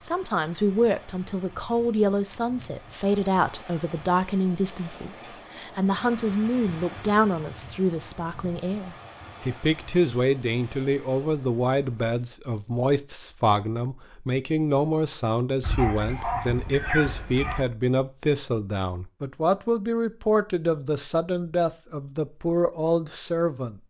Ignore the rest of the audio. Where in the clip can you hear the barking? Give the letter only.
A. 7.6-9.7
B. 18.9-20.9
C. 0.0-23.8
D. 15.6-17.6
D.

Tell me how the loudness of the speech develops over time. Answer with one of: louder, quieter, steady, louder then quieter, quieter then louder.
steady.